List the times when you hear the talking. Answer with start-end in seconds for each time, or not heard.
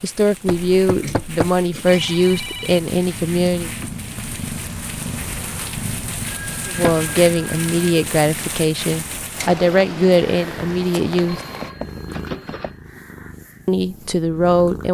0.0-3.7, 6.7-11.4, 13.7-14.9.